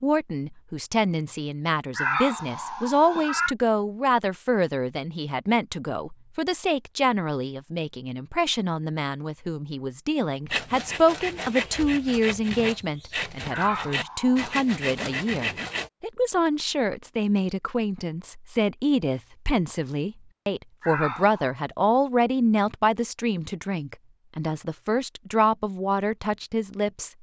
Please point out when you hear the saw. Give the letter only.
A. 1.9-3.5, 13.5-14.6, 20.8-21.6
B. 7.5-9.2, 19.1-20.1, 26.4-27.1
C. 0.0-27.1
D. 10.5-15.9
D.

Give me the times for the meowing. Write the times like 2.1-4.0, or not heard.
1.9-3.5, 13.5-14.6, 20.8-21.6.